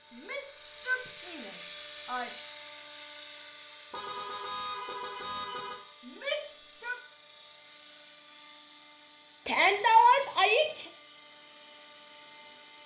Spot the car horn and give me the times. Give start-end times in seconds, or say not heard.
3.9-5.8.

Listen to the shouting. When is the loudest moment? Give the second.
10 s.